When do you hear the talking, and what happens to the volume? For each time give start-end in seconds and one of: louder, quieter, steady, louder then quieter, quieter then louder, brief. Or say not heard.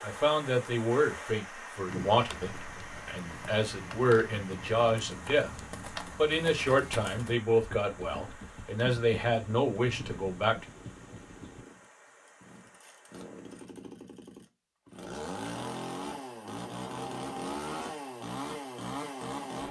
0.0-5.5 quieter then louder
6.2-10.7 quieter then louder.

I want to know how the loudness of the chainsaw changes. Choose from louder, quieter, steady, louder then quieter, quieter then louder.
louder.